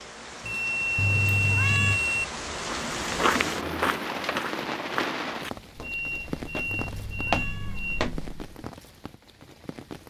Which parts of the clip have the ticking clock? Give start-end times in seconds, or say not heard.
not heard.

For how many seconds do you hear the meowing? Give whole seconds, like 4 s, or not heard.
2 s.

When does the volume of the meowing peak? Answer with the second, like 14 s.
2 s.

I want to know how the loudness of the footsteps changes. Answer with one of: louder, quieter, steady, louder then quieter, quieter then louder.
quieter then louder.